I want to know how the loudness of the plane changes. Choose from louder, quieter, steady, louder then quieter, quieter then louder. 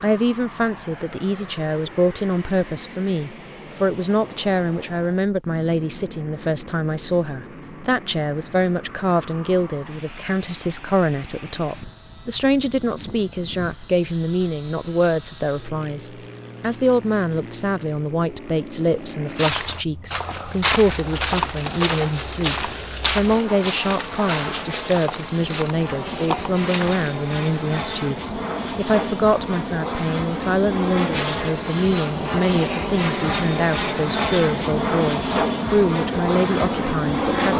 louder.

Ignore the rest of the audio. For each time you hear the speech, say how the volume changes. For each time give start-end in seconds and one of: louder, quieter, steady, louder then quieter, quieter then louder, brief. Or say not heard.
0.0-37.5 steady.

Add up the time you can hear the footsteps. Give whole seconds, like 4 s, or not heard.
8 s.